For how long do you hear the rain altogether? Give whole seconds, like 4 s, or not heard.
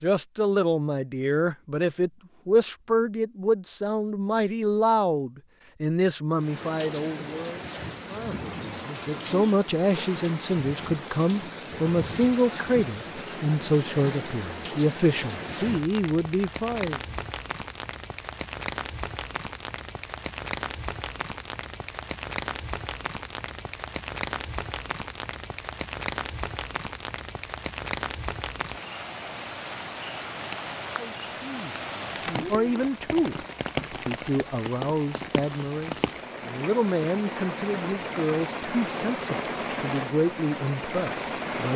35 s.